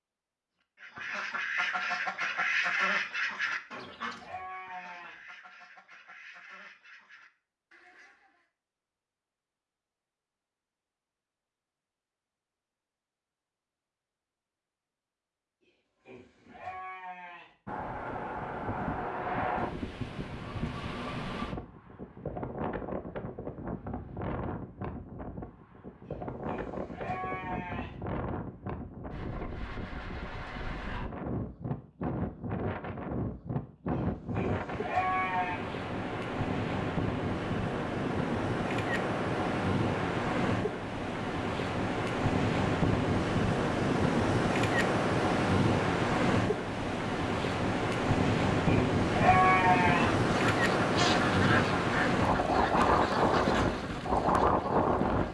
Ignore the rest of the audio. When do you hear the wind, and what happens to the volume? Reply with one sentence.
The wind can be heard from 17.6 to 55.2 s, getting louder.